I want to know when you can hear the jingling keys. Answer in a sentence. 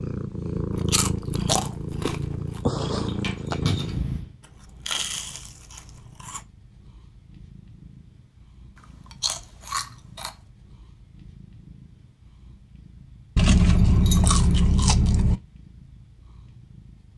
You can hear the jingling keys from 3.0 to 4.1 s and from 13.6 to 14.7 s.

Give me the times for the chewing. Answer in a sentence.
The chewing can be heard from 0.8 to 2.4 s, from 4.8 to 6.4 s, from 9.2 to 10.3 s and from 13.3 to 15.4 s.